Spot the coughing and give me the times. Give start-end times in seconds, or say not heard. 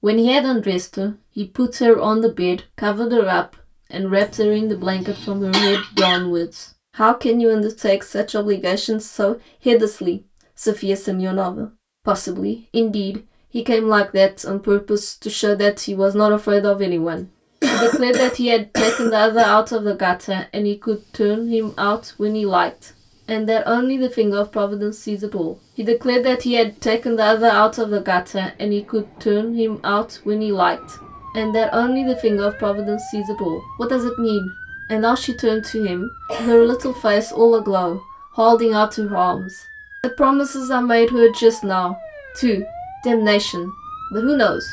4.2-6.2, 17.1-19.6, 36.2-37.1.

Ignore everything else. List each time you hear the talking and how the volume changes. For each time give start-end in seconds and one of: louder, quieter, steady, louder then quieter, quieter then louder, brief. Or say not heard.
0.0-44.6 steady.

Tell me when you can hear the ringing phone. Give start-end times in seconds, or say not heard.
not heard.